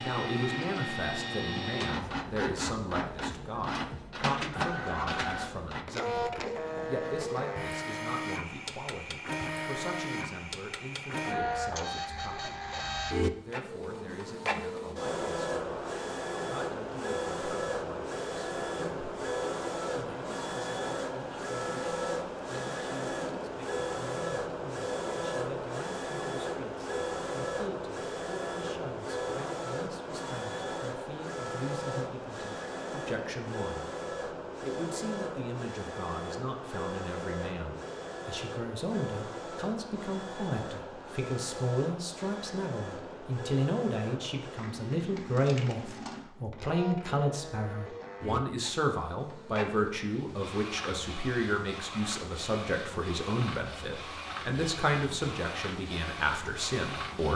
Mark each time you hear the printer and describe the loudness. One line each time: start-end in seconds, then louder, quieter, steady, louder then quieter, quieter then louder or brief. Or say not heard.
0.0-57.3 quieter.